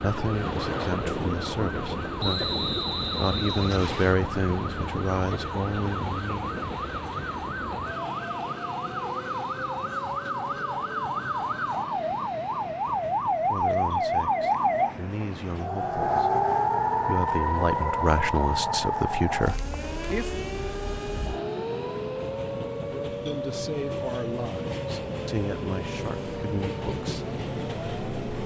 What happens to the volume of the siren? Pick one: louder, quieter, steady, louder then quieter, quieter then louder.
louder then quieter.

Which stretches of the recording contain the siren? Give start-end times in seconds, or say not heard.
0.0-28.4.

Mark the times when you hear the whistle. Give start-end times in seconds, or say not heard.
2.1-4.2.